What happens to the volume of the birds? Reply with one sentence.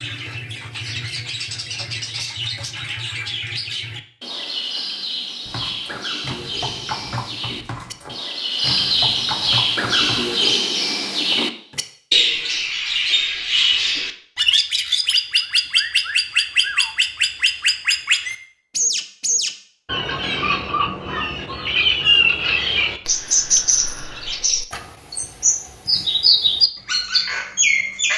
The volume of the birds goes up.